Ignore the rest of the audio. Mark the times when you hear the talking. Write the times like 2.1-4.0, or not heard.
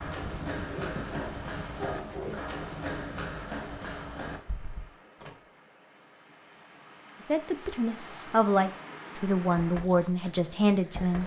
7.2-11.2.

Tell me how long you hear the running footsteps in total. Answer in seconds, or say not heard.
7 s.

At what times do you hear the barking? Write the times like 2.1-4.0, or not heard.
0.7-2.4.